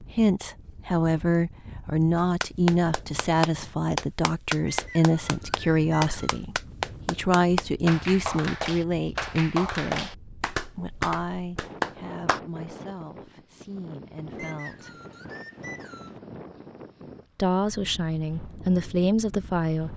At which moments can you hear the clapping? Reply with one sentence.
The clapping can be heard from 2.1 to 12.4 s.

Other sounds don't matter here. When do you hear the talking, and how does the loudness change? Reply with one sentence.
You can hear the talking from 0.1 to 14.9 s, getting quieter; and briefly from 17.4 to 19.9 s.